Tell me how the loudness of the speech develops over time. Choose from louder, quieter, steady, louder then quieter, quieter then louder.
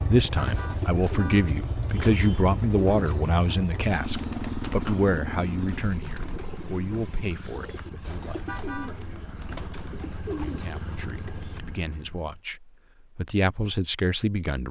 quieter then louder.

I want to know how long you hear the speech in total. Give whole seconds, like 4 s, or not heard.
13 s.